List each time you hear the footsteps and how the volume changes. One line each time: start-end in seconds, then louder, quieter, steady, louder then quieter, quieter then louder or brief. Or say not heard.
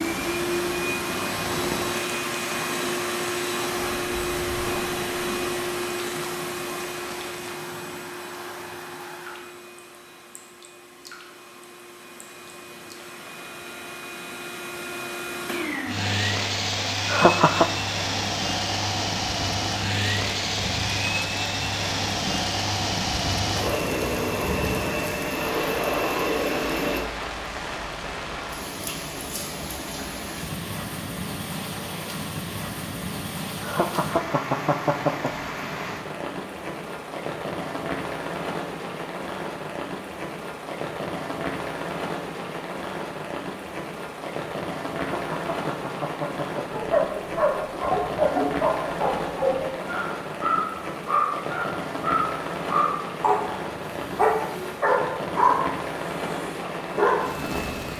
not heard.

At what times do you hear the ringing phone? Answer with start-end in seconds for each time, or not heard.
not heard.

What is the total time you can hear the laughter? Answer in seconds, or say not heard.
4 s.